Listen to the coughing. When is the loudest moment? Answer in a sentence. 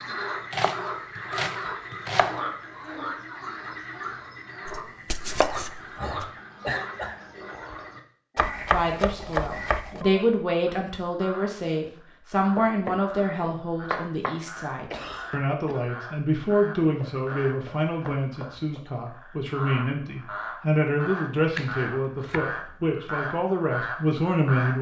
The volume of the coughing peaks at 7 seconds.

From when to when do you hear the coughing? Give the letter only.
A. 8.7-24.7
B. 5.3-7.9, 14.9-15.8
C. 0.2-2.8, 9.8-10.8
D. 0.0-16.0
B.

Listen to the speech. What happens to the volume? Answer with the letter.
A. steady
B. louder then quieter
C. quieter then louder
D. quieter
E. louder
A.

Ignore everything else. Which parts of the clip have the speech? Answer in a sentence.
The speech can be heard from 8.7 to 24.7 s.